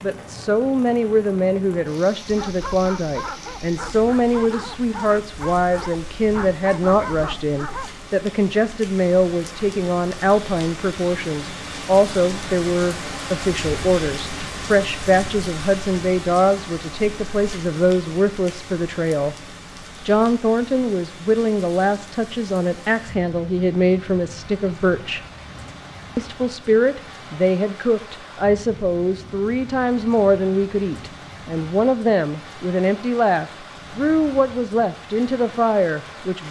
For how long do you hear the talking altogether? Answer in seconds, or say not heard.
35 s.